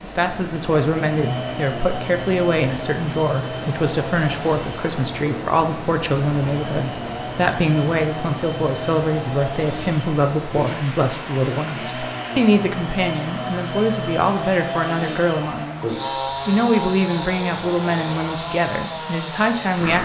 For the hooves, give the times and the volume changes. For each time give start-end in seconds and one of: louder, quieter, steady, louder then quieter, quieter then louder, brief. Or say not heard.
not heard.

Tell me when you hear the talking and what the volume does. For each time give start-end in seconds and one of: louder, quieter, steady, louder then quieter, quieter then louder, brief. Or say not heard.
0.0-20.0 steady.